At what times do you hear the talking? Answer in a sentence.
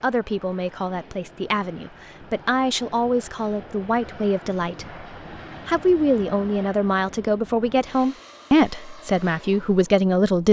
The talking can be heard from 0.0 to 5.0 s and from 5.7 to 10.4 s.